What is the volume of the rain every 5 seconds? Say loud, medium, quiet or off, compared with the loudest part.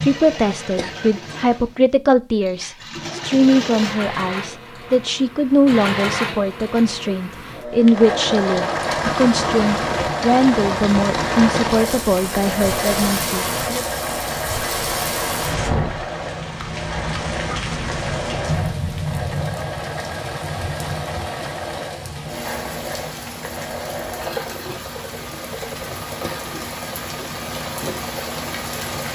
off, loud, loud, loud, medium, medium.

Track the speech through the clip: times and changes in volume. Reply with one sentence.
The speech can be heard from 0.0 to 13.8 s, at a steady volume.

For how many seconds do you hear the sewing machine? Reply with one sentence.
The sewing machine can be heard for 29 seconds in total.